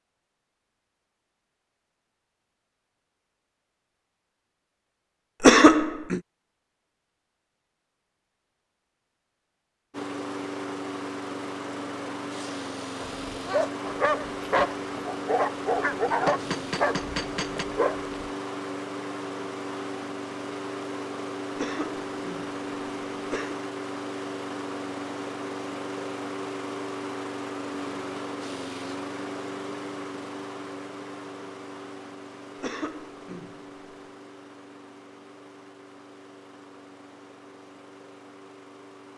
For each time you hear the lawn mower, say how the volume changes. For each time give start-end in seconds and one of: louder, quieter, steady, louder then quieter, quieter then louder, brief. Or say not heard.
9.9-39.1 quieter.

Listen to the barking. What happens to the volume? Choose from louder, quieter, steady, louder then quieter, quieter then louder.
quieter.